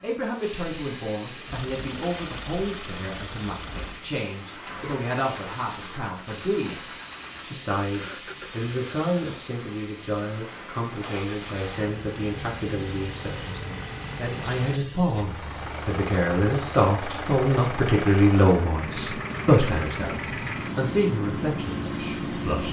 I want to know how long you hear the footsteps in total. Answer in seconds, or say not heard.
not heard.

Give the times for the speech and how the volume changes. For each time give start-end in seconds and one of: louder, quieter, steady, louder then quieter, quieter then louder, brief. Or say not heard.
0.0-22.6 louder.